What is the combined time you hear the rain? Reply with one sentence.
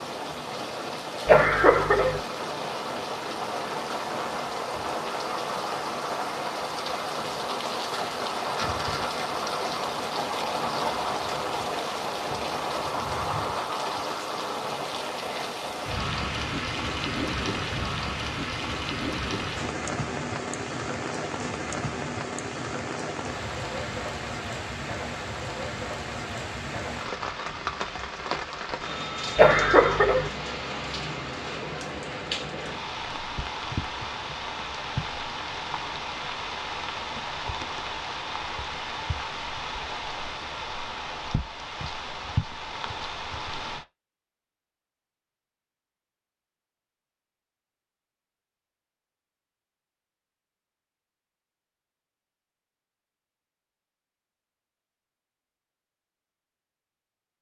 You can hear the rain for 44 seconds altogether.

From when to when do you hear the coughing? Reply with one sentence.
You can hear the coughing from 1.2 to 2.2 s and from 29.4 to 30.3 s.